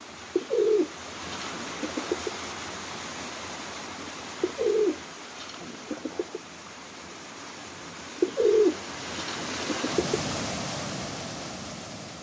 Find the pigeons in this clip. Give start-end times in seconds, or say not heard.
0.3-2.3, 4.4-6.4, 8.2-10.2.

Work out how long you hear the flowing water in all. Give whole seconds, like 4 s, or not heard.
12 s.